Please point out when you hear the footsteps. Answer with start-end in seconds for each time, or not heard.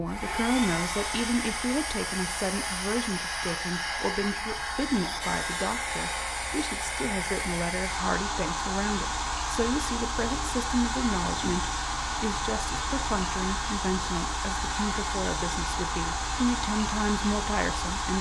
not heard.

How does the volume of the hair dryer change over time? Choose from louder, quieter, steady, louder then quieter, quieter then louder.
steady.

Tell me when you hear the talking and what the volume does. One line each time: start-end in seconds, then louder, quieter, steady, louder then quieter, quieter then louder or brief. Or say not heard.
0.0-18.1 steady.